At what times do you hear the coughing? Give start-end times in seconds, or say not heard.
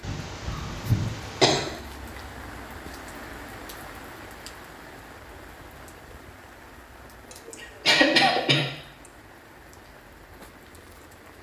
0.0-1.7, 7.3-9.1.